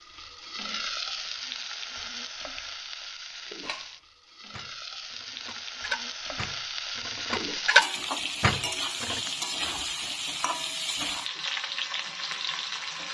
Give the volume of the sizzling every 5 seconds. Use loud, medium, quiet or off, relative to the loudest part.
medium, loud, loud.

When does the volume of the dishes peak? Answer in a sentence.
The loudest moment of the dishes is at 8 seconds.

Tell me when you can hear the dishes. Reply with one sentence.
You can hear the dishes from 3.6 to 9.2 s.